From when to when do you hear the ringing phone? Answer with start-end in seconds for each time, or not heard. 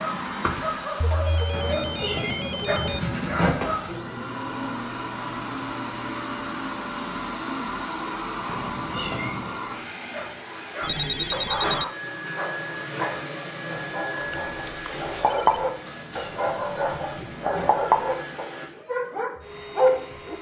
1.0-3.0, 10.8-11.8, 14.2-15.7.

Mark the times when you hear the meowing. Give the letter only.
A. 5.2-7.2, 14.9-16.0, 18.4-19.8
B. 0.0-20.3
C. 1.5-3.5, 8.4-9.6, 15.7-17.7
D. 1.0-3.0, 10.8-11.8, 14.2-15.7
C.